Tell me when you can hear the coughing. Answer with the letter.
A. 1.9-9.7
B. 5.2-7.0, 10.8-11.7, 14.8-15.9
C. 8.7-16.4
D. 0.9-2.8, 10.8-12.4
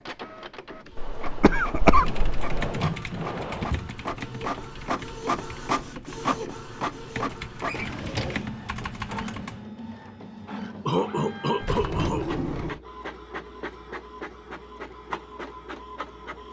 D.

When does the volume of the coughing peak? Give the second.
2 s.